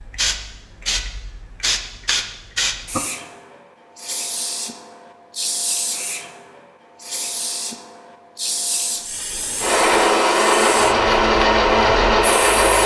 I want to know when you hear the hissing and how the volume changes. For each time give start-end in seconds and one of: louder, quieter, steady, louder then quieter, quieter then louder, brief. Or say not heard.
0.0-12.8 quieter.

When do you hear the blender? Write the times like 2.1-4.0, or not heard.
9.6-12.8.